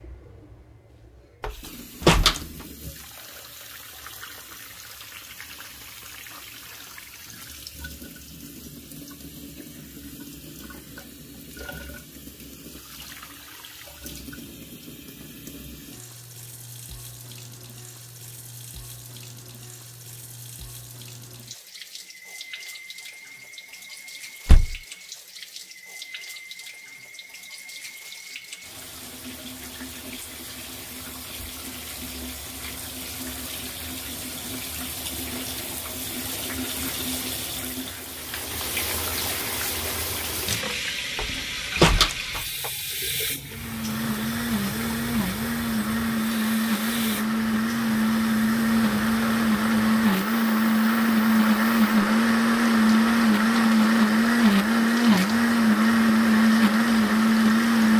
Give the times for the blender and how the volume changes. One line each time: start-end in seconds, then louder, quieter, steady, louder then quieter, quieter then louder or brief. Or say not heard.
43.5-57.9 louder.